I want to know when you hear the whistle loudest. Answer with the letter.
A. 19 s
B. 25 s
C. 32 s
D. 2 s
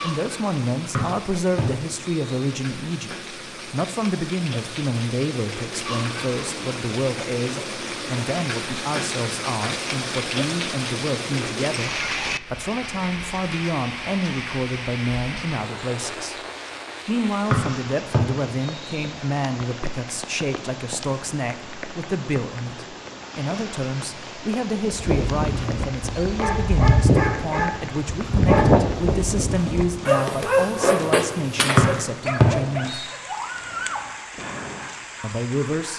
C.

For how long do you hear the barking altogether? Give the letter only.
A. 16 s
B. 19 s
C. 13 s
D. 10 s
D.